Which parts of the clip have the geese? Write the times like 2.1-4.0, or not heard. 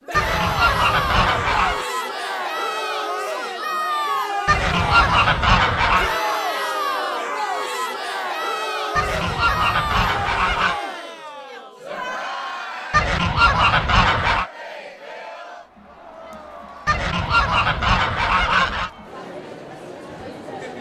0.1-1.9, 4.5-6.2, 8.9-10.8, 12.9-14.4, 16.9-18.9.